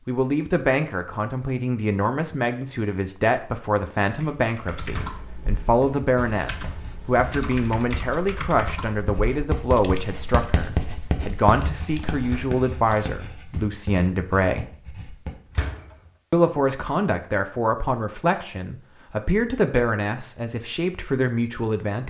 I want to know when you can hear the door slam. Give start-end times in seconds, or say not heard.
4.8-5.2, 12.2-12.6, 15.5-15.9.